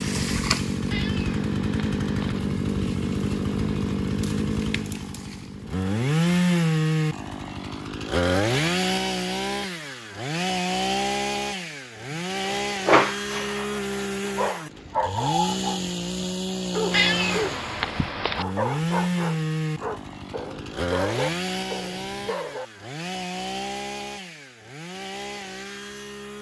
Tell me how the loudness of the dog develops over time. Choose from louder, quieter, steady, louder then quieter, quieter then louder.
quieter.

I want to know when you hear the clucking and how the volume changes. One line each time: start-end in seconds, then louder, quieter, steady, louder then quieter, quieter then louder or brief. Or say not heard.
not heard.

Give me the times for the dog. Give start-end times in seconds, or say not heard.
12.1-17.6, 18.4-22.6.